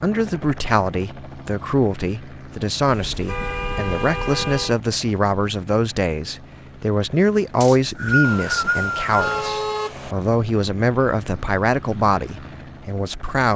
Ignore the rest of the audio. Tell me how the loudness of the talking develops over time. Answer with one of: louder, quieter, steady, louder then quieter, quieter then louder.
steady.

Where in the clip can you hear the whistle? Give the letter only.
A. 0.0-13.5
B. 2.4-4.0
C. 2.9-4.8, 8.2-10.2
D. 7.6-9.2
D.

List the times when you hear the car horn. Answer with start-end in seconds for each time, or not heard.
2.9-4.8, 8.2-10.2.